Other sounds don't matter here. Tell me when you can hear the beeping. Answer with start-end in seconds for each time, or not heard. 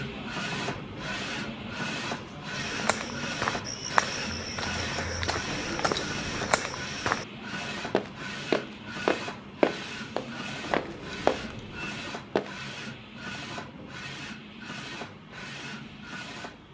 5.5-6.5, 10.7-12.1.